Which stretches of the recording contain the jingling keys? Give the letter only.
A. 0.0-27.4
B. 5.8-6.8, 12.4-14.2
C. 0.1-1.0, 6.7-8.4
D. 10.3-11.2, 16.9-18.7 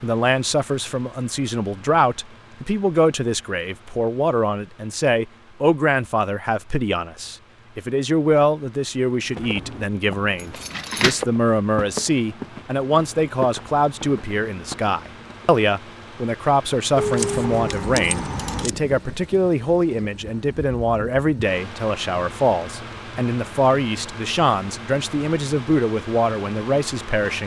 D.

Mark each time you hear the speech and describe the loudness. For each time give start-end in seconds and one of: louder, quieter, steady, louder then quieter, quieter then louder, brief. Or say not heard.
0.0-27.4 steady.